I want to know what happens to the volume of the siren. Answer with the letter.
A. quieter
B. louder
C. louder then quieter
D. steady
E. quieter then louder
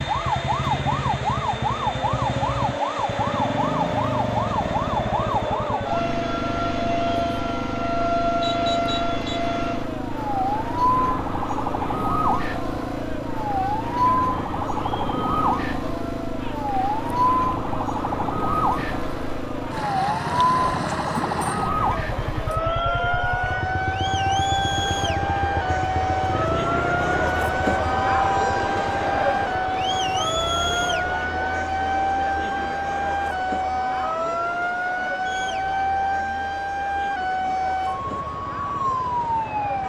D.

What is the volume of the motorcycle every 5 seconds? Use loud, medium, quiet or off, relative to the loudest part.
loud, loud, loud, loud, loud, medium, quiet, quiet.